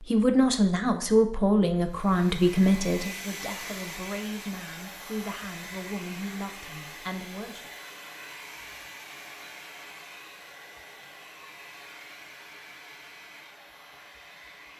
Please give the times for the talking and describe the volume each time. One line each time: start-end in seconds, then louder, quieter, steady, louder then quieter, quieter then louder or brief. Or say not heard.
0.0-7.7 quieter.